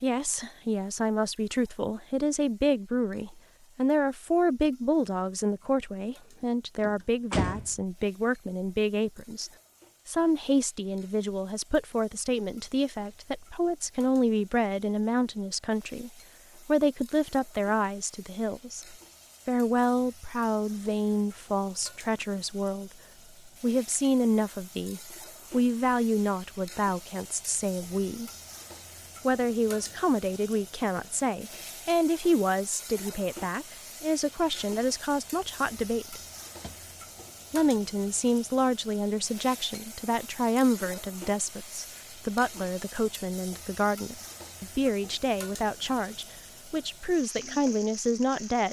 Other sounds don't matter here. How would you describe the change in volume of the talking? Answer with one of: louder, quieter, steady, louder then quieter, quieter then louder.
steady.